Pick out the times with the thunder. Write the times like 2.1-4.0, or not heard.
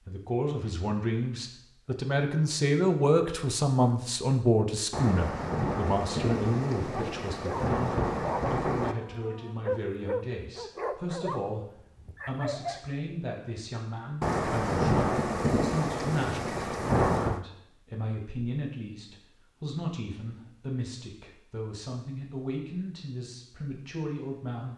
4.9-8.9, 14.2-17.4.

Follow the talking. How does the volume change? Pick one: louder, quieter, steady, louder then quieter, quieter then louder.
quieter.